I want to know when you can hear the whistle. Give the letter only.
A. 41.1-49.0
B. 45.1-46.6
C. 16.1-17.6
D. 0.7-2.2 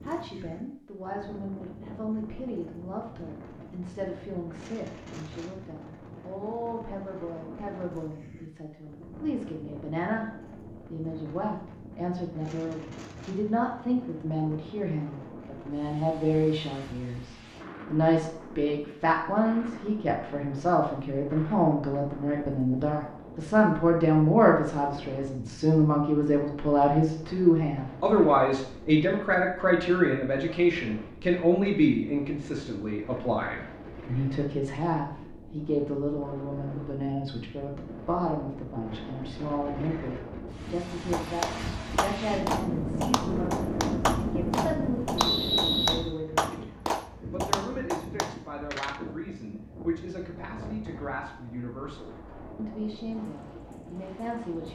B.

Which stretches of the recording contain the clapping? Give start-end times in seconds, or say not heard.
41.1-49.0.